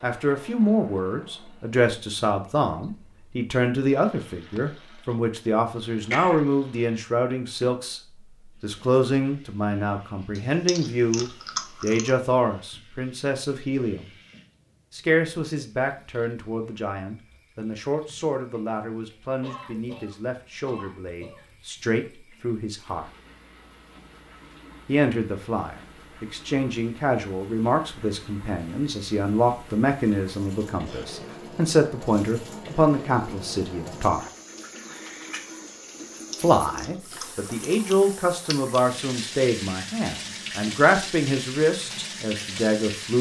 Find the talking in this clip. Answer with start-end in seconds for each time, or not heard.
0.0-8.0, 8.6-14.1, 14.9-23.1, 24.9-34.3, 36.4-43.1.